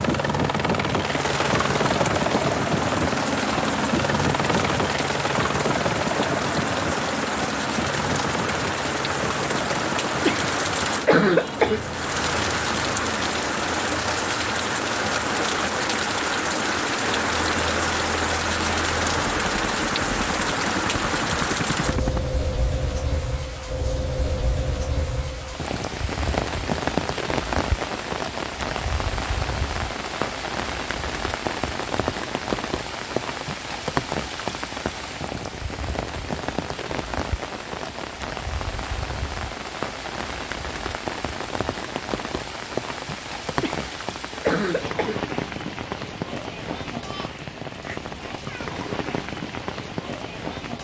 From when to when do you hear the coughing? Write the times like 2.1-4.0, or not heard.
10.2-11.8, 43.6-45.2.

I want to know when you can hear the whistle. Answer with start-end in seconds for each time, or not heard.
not heard.